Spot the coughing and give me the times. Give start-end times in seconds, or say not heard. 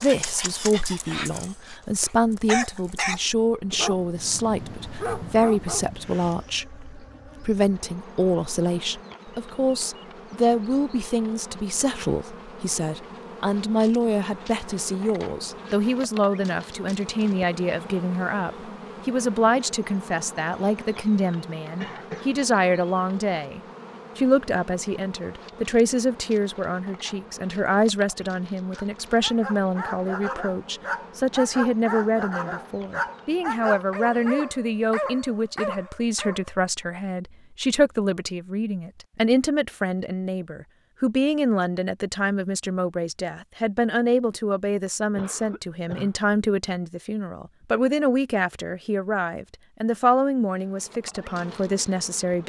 21.8-22.3, 45.1-46.2.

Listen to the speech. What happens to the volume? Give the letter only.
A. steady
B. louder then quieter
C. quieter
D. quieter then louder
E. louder
A.